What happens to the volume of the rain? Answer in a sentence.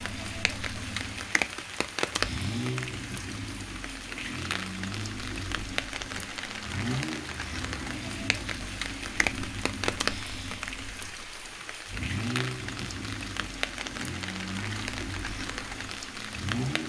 The volume of the rain stays about the same.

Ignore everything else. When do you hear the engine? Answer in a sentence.
The engine can be heard from 0.0 to 16.8 s.